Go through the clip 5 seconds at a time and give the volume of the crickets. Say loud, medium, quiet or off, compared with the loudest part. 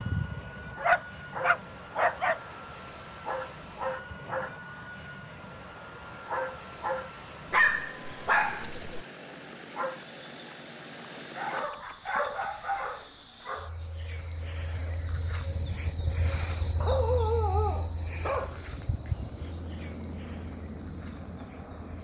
medium, medium, medium, loud, medium.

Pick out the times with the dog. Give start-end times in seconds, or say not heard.
0.8-2.4, 7.5-9.1, 11.3-13.7, 16.8-18.6.